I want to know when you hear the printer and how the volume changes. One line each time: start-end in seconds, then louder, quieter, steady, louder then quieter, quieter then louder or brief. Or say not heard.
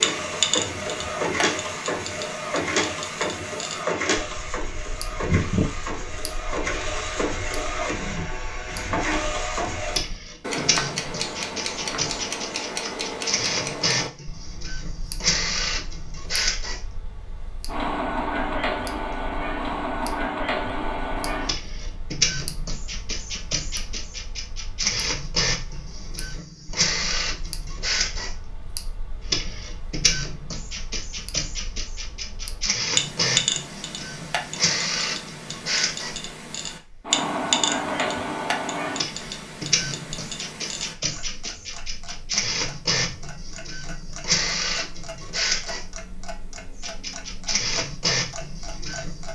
0.0-49.3 steady.